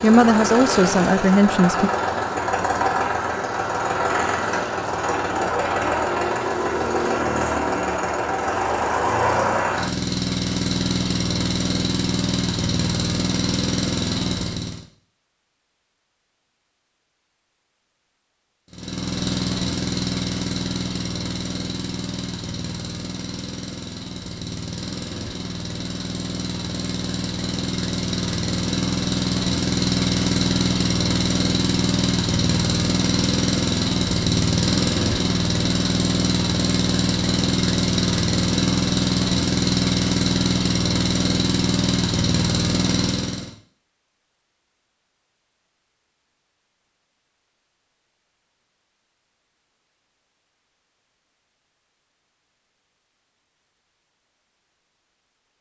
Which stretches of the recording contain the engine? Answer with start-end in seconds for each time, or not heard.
0.0-14.8, 18.7-43.5.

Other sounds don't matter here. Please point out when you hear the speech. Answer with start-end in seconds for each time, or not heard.
0.0-1.9.